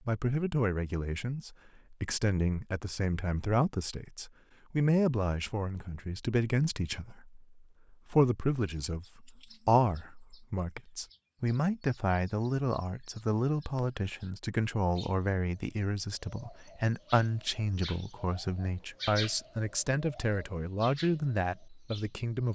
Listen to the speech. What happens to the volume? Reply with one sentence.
The loudness of the speech stays about the same.